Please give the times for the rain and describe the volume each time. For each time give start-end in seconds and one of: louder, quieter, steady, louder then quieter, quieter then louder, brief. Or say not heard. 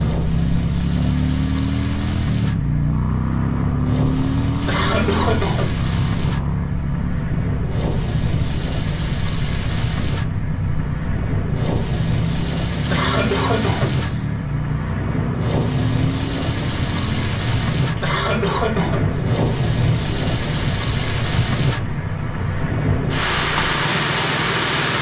0.0-24.9 louder.